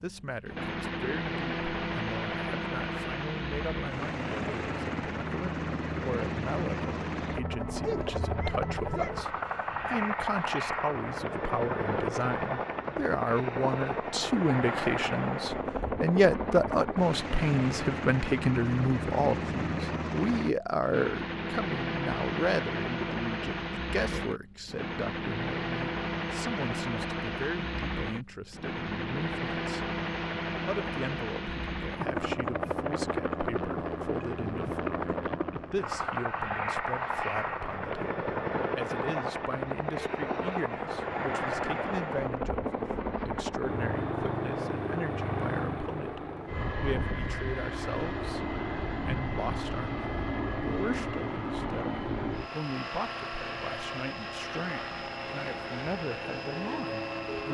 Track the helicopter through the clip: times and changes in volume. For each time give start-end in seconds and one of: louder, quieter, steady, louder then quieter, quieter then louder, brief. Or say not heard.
0.0-57.4 steady.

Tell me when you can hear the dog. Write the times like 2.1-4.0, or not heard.
7.8-9.1.